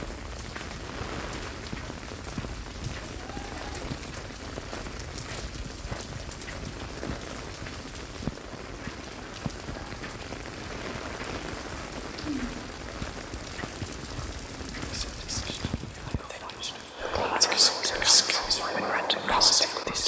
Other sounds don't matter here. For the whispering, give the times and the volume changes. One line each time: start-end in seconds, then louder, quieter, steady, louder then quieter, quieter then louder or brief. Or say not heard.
14.8-20.0 louder.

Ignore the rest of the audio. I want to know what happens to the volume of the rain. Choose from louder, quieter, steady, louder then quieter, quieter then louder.
steady.